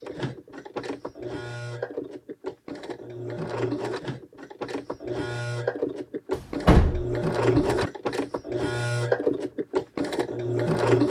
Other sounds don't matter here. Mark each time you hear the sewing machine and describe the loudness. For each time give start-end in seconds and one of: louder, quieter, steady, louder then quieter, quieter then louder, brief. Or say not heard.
0.0-11.0 louder.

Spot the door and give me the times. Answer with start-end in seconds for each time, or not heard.
6.3-7.9.